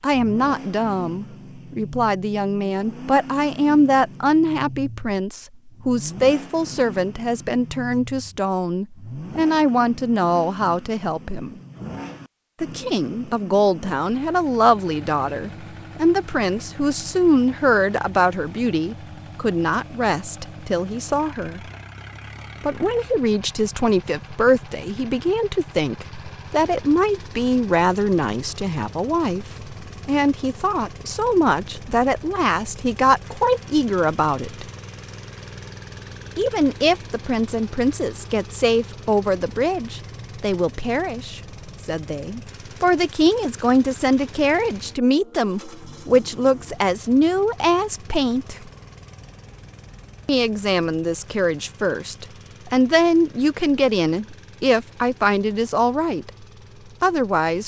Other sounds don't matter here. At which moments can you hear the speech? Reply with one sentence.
You can hear the speech from 0.0 to 11.6 s, from 12.6 to 21.6 s, from 22.6 to 34.6 s, from 36.4 to 48.5 s, from 50.2 to 56.3 s and from 57.0 to 57.6 s.